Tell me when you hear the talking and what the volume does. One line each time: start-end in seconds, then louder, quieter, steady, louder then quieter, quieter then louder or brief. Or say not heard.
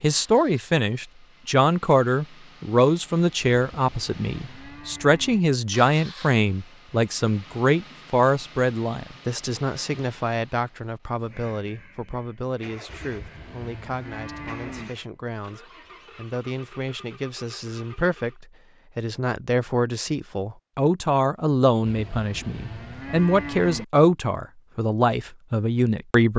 0.0-26.3 quieter then louder.